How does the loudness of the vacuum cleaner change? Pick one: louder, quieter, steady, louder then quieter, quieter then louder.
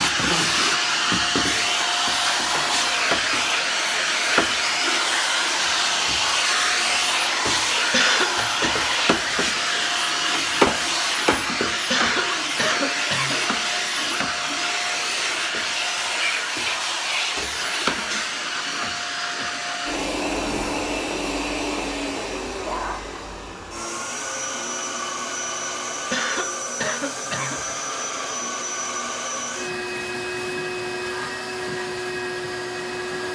quieter.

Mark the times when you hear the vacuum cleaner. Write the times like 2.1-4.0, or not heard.
0.0-33.3.